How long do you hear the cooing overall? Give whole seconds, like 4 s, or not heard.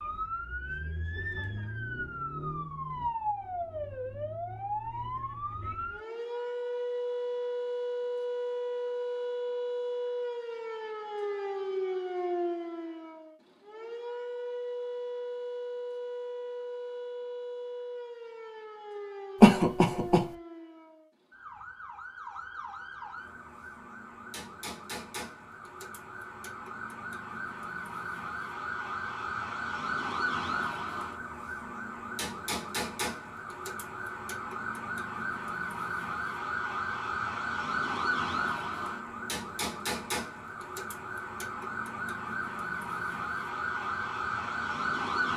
not heard.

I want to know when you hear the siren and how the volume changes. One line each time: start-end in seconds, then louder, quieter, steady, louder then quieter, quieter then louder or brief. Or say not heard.
0.0-45.3 quieter then louder.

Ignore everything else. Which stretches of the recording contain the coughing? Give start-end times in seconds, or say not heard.
19.4-20.2.